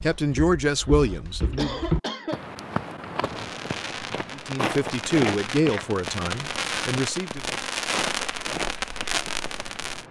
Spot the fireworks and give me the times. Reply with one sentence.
The fireworks can be heard from 3.2 to 10.0 s.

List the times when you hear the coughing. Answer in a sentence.
You can hear the coughing from 0.6 to 2.5 s.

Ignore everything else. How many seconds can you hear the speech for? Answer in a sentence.
You can hear the speech for 5 seconds altogether.